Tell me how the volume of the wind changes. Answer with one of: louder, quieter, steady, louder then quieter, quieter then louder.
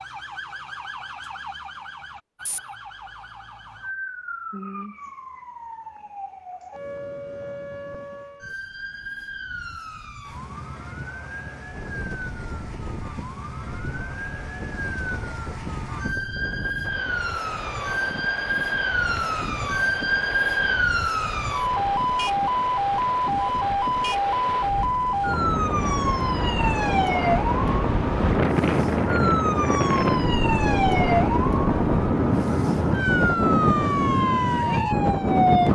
louder.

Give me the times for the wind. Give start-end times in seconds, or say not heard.
11.7-35.7.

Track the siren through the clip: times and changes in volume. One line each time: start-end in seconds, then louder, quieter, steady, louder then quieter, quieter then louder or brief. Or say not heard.
0.0-35.7 louder.